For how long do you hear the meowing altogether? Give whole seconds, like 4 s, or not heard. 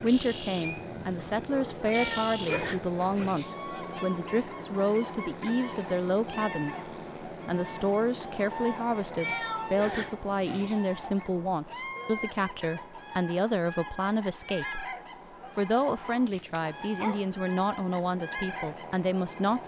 4 s.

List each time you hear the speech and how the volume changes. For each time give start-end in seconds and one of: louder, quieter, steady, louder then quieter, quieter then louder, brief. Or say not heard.
0.0-14.8 steady
15.6-19.6 steady.